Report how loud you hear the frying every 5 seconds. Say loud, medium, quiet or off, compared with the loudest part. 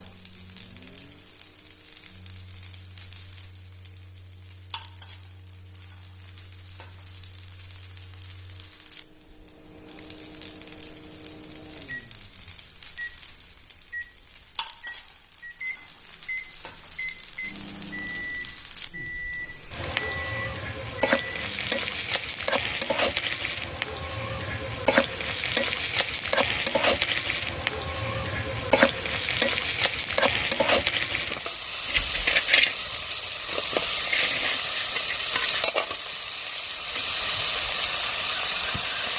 quiet, quiet, quiet, quiet, loud, loud, loud, loud.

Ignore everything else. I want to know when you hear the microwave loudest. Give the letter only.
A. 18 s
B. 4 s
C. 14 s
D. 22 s
A.